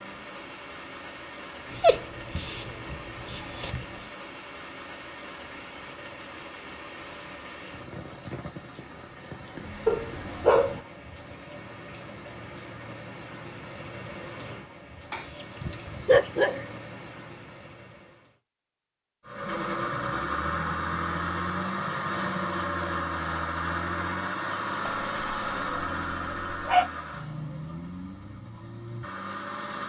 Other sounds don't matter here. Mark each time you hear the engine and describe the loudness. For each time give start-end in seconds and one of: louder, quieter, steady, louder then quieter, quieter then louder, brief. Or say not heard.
19.2-29.8 quieter.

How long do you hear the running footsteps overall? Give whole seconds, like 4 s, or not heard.
not heard.